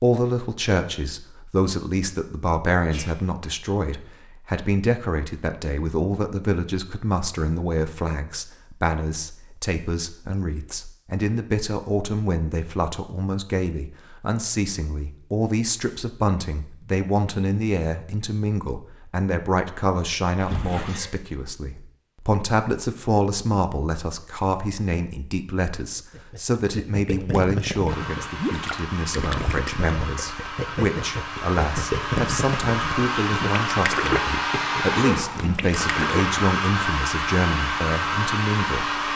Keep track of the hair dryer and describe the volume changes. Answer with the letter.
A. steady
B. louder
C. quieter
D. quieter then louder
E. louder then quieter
B.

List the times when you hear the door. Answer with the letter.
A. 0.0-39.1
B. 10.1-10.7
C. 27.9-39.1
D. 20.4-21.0
D.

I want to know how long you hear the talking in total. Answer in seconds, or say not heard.
39 s.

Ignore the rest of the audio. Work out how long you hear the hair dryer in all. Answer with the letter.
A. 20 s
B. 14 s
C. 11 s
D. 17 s
C.